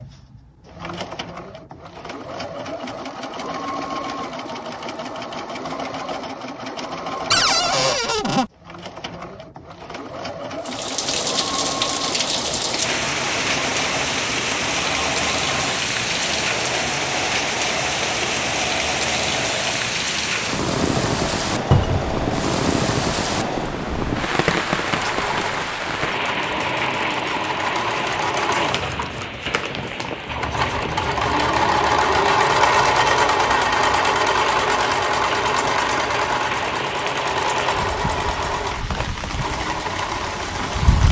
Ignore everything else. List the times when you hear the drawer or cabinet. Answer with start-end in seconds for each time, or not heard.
7.3-8.5, 21.7-22.1, 28.4-29.3.